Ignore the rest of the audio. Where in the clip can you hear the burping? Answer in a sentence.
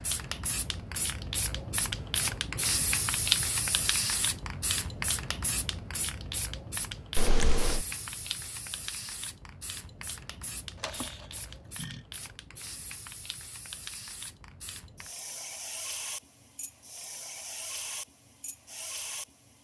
You can hear the burping from 7.2 to 7.8 s and from 10.8 to 12.0 s.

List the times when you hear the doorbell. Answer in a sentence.
You can't hear the doorbell here.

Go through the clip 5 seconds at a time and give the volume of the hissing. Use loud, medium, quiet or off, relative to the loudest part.
loud, medium, quiet, medium.